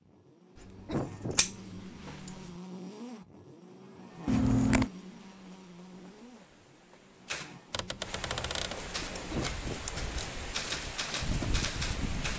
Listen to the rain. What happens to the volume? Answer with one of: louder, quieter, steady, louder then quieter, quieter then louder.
louder.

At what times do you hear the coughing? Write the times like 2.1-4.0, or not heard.
0.8-1.4, 9.3-9.8.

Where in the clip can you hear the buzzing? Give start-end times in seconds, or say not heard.
0.0-9.2.